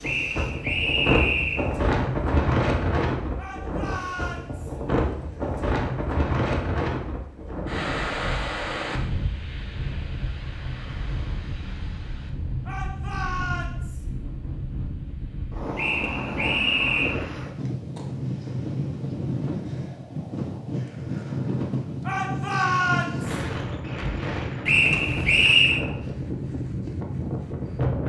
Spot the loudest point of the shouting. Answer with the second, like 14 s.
23 s.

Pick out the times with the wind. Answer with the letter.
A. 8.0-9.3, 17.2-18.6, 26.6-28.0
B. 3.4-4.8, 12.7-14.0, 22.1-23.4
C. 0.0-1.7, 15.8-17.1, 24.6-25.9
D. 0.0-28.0
D.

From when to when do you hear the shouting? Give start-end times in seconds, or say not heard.
3.4-4.8, 12.7-14.0, 22.1-23.4.